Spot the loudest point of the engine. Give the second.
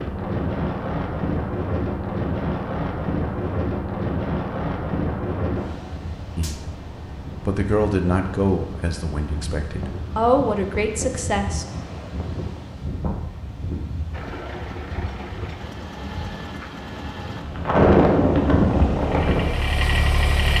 20 s.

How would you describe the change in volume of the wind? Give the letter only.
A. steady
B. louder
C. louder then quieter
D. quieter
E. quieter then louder
E.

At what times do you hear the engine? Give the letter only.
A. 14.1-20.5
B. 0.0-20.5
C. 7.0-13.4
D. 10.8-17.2
A.